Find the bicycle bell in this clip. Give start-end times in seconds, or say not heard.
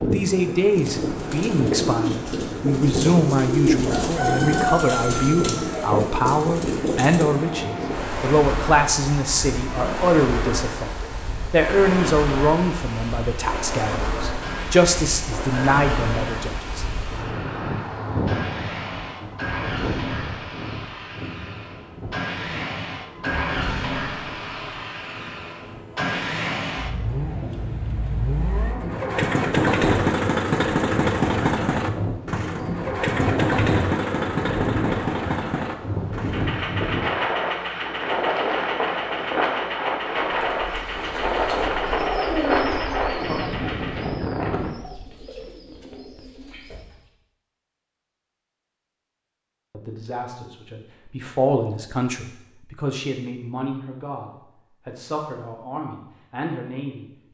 not heard.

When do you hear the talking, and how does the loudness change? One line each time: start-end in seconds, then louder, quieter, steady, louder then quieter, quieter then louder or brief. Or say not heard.
0.0-16.9 steady
49.7-57.0 louder then quieter.